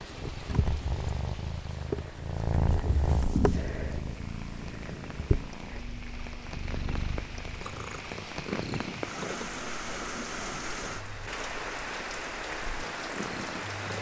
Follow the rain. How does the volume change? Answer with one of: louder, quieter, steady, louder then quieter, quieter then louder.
louder.